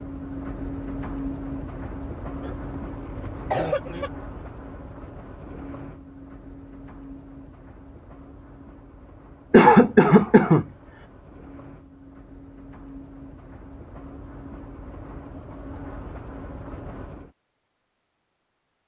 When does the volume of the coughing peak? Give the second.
10 s.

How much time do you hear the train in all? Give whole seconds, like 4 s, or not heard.
17 s.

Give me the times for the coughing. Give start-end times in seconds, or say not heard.
2.4-4.1, 9.5-10.7.